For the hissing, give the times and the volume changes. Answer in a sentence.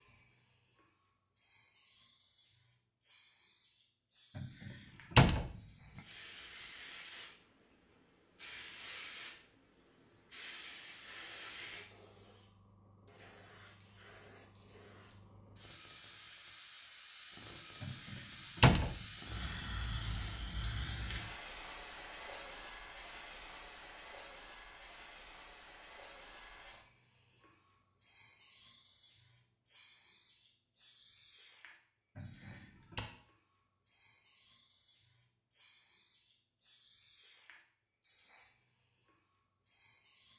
The hissing can be heard from 0.0 to 40.3 s, getting louder then quieter.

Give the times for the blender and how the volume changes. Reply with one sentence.
The blender can't be heard in this clip.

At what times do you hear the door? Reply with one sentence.
The door can be heard from 4.3 to 5.5 s, from 17.8 to 18.9 s and from 32.1 to 33.0 s.